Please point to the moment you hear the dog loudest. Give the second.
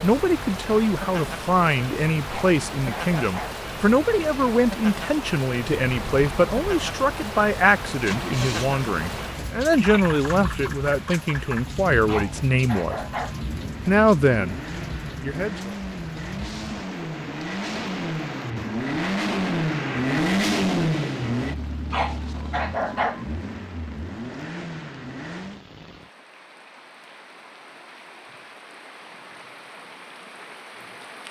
23 s.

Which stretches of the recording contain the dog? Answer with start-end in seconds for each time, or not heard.
2.2-3.6, 12.1-13.4, 21.9-23.2.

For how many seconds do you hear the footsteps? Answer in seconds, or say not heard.
not heard.